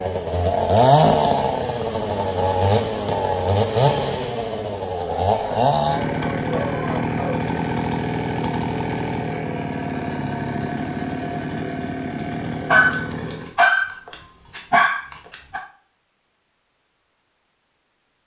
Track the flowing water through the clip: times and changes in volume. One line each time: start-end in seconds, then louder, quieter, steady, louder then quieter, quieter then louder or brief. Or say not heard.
not heard.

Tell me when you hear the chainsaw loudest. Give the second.
1 s.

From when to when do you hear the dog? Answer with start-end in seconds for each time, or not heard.
5.0-7.4, 12.7-15.6.